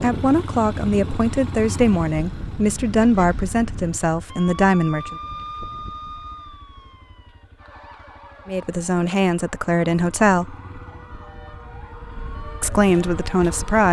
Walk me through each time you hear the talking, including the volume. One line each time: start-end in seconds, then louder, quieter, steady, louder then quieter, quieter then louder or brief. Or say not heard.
0.0-5.2 steady
8.4-10.6 brief
12.6-13.8 brief.